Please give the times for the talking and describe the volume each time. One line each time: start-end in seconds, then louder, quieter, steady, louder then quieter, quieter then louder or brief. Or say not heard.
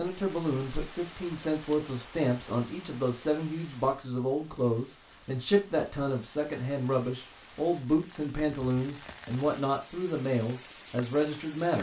0.0-11.7 steady.